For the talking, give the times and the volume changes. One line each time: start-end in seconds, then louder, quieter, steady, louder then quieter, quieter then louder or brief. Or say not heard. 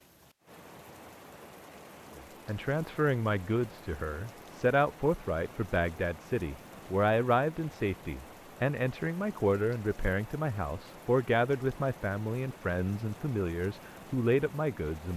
2.1-15.1 steady.